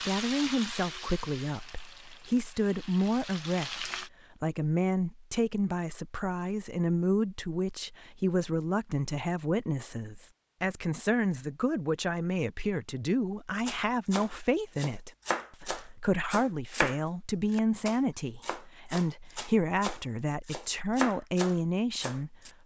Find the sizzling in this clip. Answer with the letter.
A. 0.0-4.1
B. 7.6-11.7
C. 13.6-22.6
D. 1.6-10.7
A.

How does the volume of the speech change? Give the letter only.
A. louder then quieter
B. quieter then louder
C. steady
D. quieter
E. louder
C.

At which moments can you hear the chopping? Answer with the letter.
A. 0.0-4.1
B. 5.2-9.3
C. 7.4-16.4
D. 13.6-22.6
D.